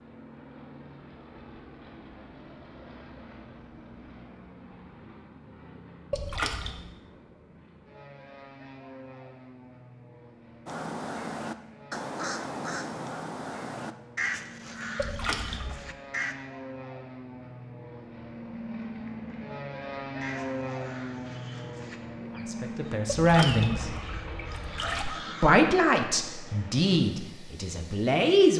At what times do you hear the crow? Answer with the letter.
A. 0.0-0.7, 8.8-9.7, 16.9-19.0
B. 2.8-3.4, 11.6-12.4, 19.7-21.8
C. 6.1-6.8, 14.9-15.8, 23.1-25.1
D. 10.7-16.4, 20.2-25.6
D.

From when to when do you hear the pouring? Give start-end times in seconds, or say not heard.
6.1-6.8, 14.9-15.8, 23.1-25.1.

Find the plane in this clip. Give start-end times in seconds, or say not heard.
0.0-28.2.